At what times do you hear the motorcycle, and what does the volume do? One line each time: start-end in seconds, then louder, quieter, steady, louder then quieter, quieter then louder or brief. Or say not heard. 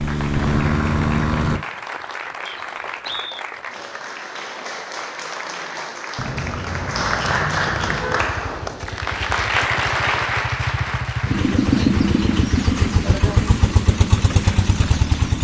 0.0-1.6 brief
8.1-15.4 louder.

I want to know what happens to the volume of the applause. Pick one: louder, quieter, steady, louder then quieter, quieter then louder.
louder then quieter.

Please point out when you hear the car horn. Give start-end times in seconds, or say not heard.
0.3-1.6, 6.2-8.2, 11.7-12.5.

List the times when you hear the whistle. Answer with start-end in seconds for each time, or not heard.
2.5-3.5.